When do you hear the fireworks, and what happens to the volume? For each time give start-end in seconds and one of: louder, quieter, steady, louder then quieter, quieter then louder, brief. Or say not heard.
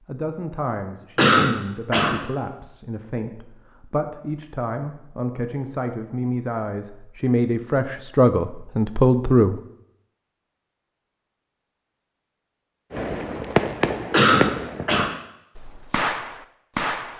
12.9-17.1 quieter then louder.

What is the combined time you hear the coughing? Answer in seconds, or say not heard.
2 s.